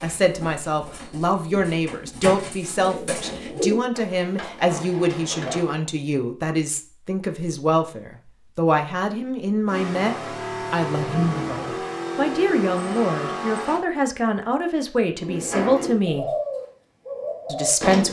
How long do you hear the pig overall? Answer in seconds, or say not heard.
not heard.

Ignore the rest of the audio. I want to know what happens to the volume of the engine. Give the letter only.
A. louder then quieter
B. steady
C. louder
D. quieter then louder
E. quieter
B.